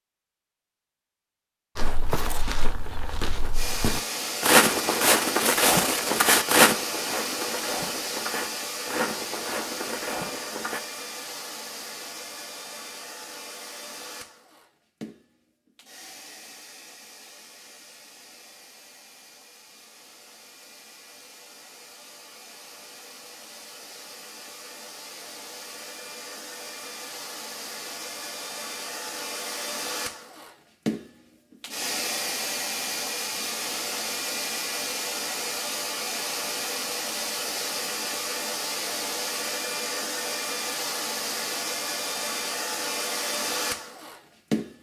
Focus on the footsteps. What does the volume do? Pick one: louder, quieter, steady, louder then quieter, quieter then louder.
louder then quieter.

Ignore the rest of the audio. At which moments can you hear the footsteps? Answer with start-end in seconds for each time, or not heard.
1.8-10.8.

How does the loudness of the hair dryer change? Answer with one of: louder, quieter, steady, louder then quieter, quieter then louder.
quieter then louder.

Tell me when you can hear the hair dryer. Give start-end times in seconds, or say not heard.
3.5-44.7.